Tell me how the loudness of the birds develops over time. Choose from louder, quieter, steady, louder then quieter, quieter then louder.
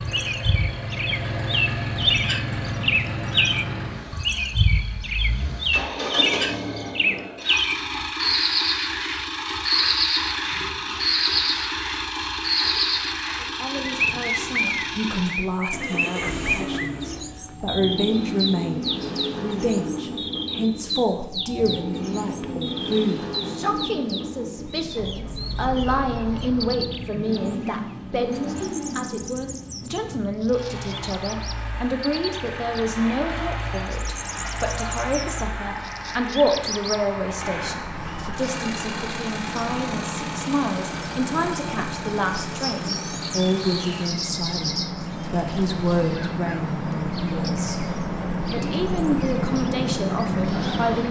quieter then louder.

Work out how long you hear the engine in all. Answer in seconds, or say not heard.
44 s.